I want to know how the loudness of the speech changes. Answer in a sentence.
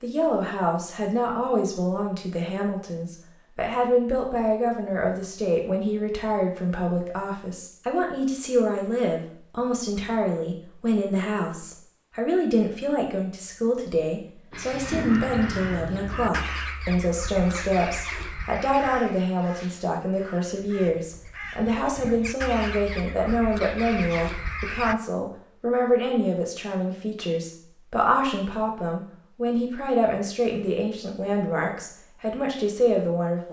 The loudness of the speech stays about the same.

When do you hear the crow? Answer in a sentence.
The crow can be heard from 14.5 to 24.9 s.